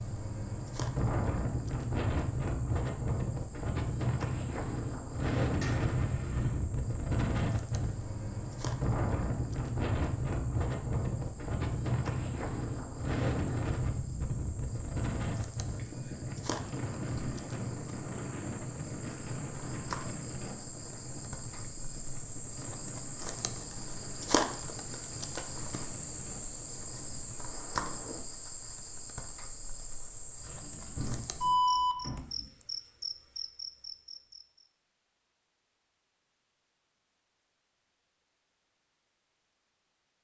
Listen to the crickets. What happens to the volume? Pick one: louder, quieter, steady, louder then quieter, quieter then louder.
louder.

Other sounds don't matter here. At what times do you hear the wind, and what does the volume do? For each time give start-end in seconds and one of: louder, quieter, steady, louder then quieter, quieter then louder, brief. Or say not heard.
0.0-28.2 quieter.